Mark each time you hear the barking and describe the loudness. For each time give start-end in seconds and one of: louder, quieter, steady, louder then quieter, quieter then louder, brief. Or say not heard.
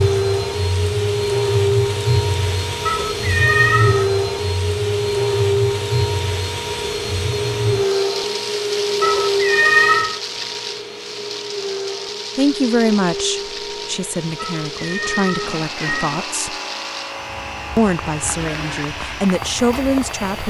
not heard.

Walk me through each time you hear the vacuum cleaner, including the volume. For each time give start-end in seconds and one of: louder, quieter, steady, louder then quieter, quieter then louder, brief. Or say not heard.
0.0-20.4 quieter.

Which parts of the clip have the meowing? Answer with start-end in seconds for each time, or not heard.
2.9-4.1, 9.0-10.2, 14.3-16.2.